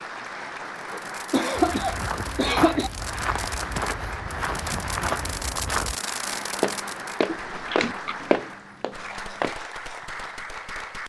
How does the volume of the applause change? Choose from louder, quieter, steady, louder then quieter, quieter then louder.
steady.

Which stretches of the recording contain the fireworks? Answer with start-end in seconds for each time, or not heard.
0.8-7.3.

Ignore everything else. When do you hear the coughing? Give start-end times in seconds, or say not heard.
0.9-2.9, 7.2-8.2.